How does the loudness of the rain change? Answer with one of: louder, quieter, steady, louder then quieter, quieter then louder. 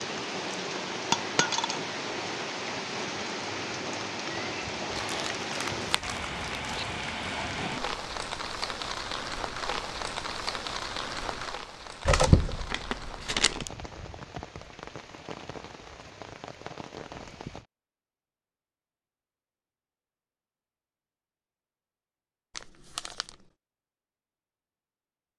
quieter.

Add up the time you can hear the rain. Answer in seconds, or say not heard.
18 s.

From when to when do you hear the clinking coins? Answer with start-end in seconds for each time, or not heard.
1.1-1.8.